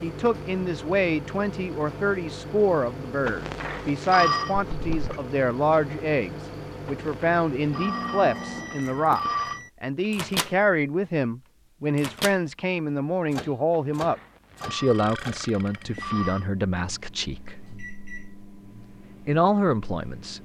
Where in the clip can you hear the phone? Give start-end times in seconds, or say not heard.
3.2-4.5, 6.8-9.6, 13.7-16.4.